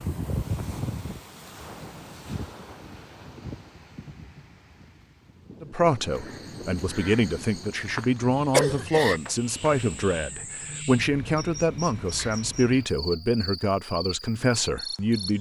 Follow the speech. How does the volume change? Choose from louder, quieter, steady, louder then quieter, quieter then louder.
steady.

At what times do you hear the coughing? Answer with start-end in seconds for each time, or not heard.
8.5-9.2.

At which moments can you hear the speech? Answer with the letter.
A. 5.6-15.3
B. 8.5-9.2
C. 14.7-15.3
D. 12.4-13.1
A.